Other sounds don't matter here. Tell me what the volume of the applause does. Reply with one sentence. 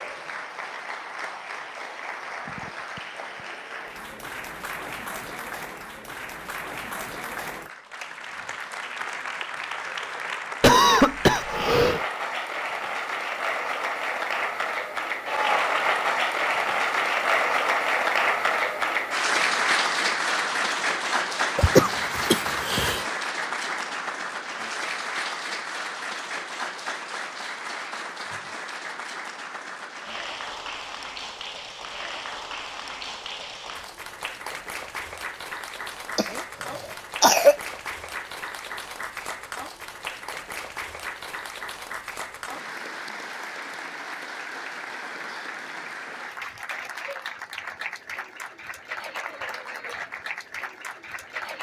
The volume of the applause goes up, then down.